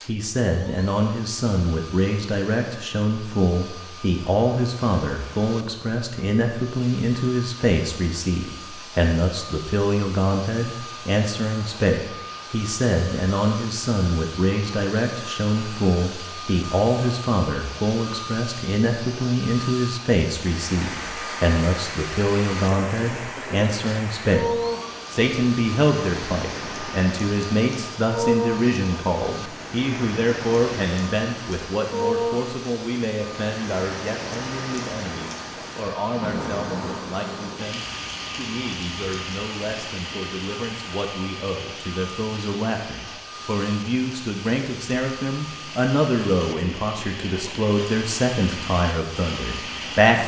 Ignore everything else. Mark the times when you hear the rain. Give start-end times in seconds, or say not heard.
20.3-50.2.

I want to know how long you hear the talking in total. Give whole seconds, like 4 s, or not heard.
50 s.